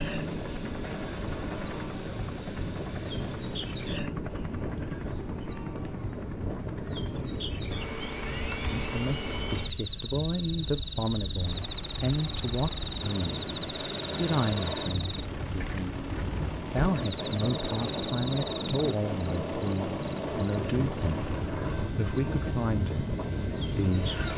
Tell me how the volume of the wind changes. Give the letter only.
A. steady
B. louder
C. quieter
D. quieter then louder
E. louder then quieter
B.